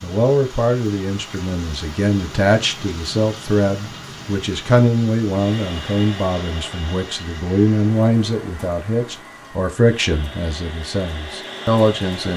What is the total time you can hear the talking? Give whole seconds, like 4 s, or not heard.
12 s.